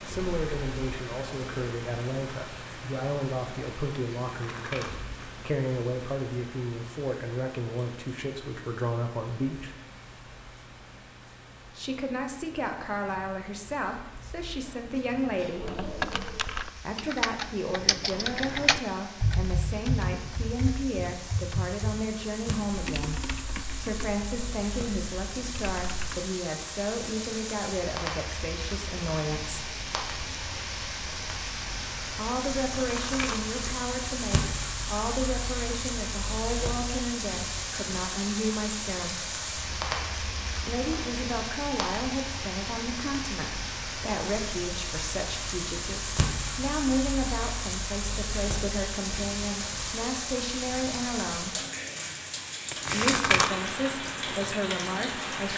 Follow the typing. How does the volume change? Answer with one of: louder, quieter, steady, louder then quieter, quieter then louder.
quieter.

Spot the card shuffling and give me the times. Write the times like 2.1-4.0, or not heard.
4.3-5.3, 32.7-33.5, 52.7-53.5.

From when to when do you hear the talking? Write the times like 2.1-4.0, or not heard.
0.0-9.8, 11.7-15.8, 16.8-29.7, 32.0-39.2, 40.5-51.5, 52.9-55.5.